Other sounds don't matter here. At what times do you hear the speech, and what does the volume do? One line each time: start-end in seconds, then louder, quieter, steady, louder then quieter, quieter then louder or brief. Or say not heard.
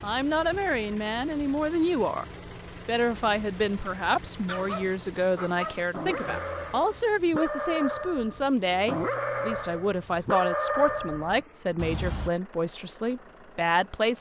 0.0-2.2 brief
2.9-14.1 steady.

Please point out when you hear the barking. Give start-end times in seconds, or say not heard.
4.5-12.3.